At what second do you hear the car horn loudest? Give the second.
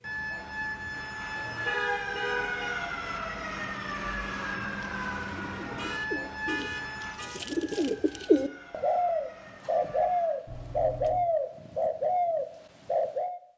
2 s.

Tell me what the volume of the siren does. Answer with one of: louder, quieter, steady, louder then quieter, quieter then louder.
quieter.